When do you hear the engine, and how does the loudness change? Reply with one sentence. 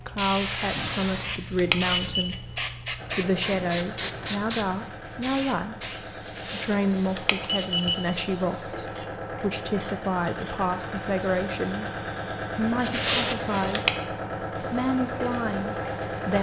You can hear the engine from 3.0 to 16.3 s, getting louder.